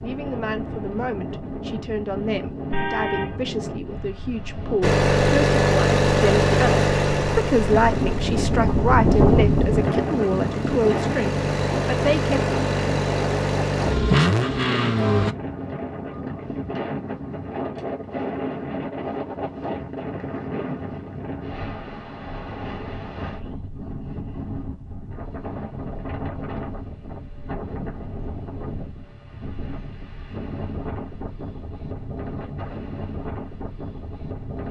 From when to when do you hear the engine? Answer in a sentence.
The engine can be heard from 4.8 to 15.3 s.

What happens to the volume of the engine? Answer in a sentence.
The volume of the engine goes down, then up.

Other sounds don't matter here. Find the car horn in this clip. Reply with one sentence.
You can hear the car horn from 2.7 to 3.4 s.